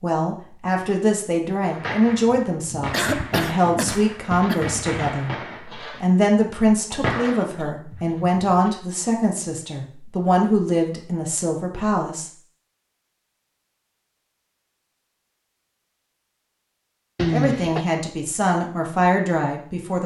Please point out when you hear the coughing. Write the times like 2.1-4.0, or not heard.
2.9-4.7, 6.9-7.8, 17.1-17.9.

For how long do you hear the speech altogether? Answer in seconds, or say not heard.
15 s.